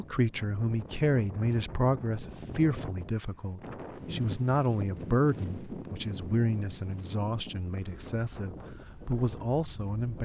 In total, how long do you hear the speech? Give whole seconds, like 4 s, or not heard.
10 s.